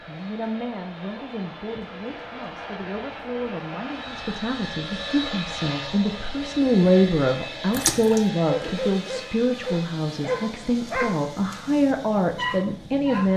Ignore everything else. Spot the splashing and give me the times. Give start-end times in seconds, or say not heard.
7.7-8.2.